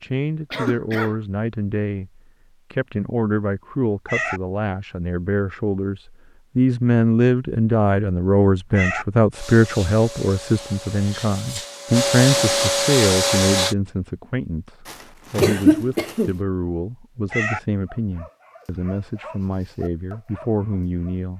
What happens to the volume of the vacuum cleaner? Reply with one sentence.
The loudness of the vacuum cleaner goes up.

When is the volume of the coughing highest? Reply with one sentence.
The volume of the coughing peaks at 16 seconds.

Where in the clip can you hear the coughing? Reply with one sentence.
You can hear the coughing from 0.5 to 1.2 s and from 14.8 to 16.4 s.